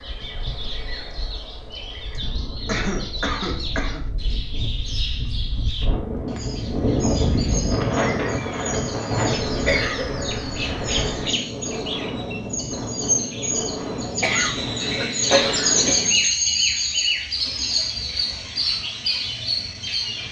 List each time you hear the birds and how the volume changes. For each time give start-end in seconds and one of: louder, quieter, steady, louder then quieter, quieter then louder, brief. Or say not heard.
0.0-20.2 louder.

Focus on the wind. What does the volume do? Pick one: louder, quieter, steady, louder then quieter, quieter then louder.
louder then quieter.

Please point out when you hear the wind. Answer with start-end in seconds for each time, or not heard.
0.0-16.2.